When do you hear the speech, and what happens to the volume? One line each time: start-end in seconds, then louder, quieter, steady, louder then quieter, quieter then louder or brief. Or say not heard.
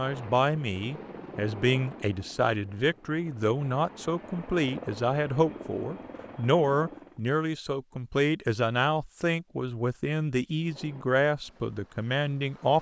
0.0-12.7 steady.